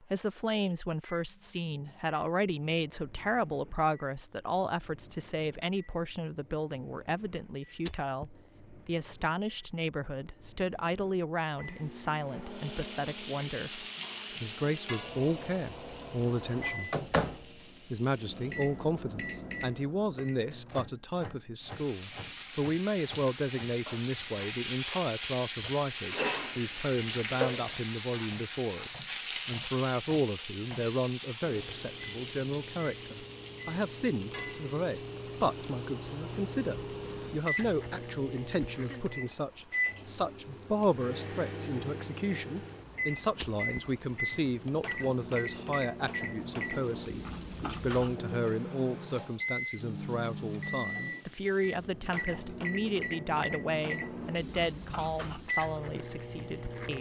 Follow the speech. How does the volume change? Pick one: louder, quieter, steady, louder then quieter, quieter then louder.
steady.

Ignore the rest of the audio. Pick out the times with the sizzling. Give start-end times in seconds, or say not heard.
12.4-18.7, 21.6-52.0.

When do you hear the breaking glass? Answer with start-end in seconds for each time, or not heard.
7.8-8.3, 43.4-43.9.